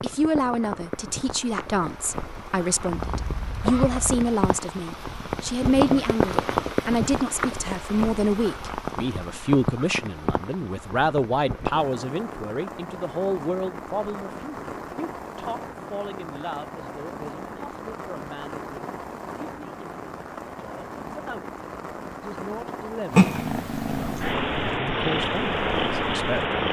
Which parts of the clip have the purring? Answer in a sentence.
The purring can be heard from 23.1 to 26.6 s.